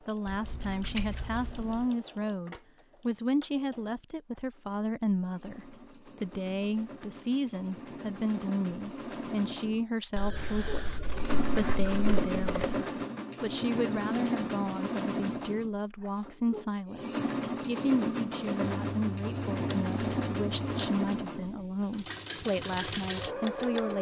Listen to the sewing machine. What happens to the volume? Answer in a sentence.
The volume of the sewing machine goes up.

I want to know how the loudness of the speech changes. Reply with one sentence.
The volume of the speech stays about the same.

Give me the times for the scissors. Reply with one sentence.
You can hear the scissors from 0.2 to 1.9 s, from 10.2 to 12.8 s and from 18.6 to 20.9 s.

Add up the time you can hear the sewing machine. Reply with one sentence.
You can hear the sewing machine for 24 seconds altogether.